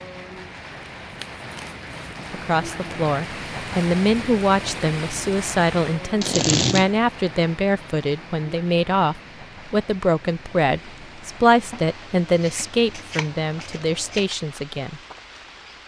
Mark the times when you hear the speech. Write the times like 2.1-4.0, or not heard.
2.3-15.0.